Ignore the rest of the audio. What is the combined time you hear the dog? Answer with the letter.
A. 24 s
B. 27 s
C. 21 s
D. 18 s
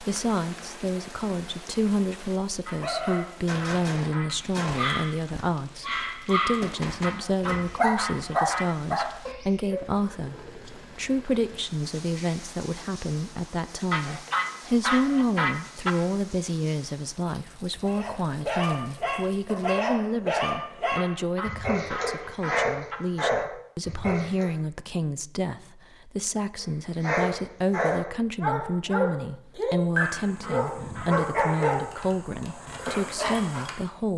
C.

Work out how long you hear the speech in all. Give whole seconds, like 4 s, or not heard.
34 s.